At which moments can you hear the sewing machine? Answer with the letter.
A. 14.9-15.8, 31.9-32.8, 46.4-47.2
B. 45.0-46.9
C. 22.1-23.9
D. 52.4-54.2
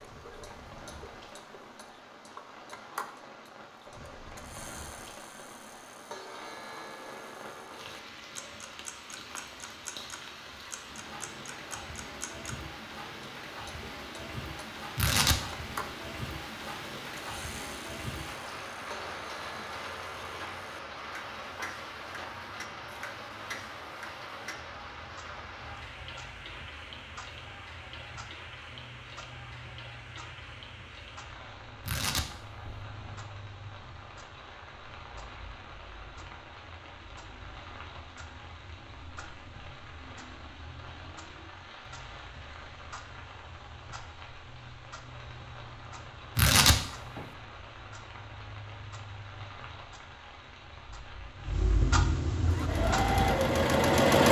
D.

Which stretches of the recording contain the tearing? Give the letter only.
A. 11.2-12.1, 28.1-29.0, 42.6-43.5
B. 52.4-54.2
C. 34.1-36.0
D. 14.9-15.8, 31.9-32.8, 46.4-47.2
D.